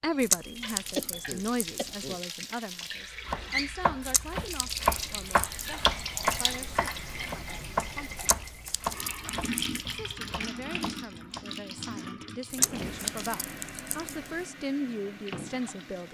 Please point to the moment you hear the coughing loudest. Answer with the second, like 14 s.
1 s.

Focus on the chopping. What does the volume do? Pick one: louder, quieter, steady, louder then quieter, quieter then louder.
quieter.